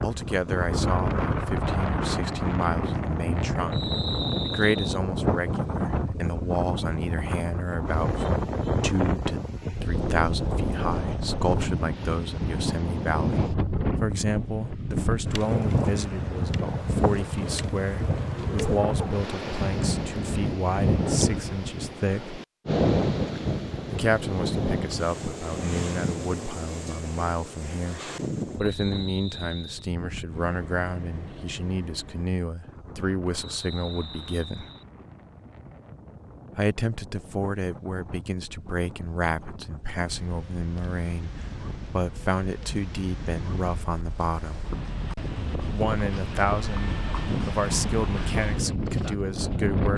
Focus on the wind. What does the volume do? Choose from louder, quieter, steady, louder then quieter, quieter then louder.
quieter then louder.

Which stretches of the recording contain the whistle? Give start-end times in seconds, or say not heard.
3.7-5.0, 28.6-29.9, 33.5-34.9.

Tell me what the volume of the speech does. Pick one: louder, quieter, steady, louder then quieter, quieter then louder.
steady.